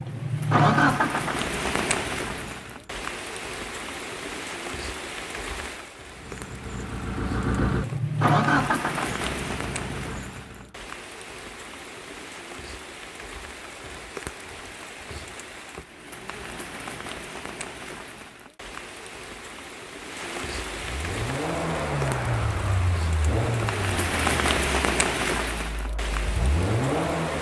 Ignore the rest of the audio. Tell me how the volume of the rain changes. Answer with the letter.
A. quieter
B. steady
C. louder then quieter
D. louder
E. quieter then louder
E.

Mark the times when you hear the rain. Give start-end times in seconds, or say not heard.
0.0-27.3.